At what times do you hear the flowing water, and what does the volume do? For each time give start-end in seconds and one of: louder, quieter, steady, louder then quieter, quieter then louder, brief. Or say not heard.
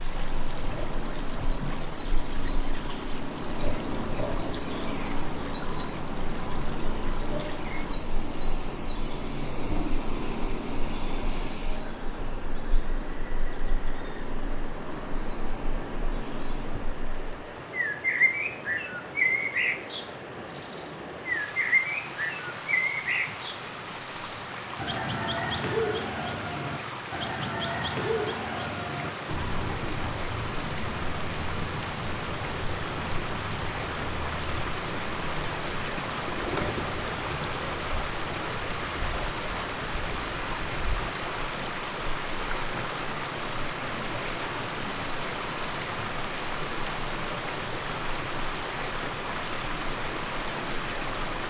0.0-51.4 louder.